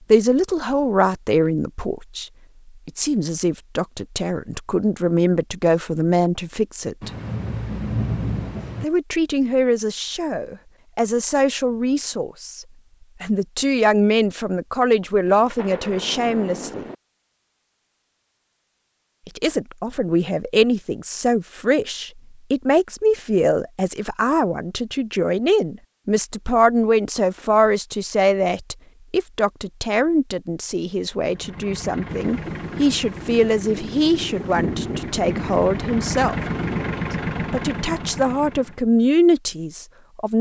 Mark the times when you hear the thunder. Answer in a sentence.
You can hear the thunder from 7.0 to 8.8 s, from 15.2 to 16.9 s and from 32.1 to 37.0 s.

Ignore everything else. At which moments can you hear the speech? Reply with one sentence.
You can hear the speech from 0.1 to 7.1 s, from 8.8 to 16.9 s, from 19.2 to 36.4 s and from 37.5 to 40.3 s.